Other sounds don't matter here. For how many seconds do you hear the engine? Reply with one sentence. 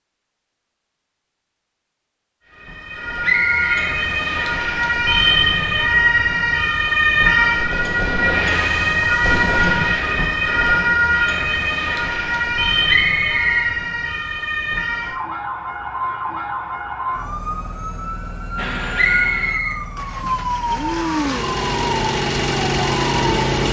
You can hear the engine for 5 seconds altogether.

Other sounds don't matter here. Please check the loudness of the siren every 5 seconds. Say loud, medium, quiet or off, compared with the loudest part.
medium, loud, loud, medium, medium.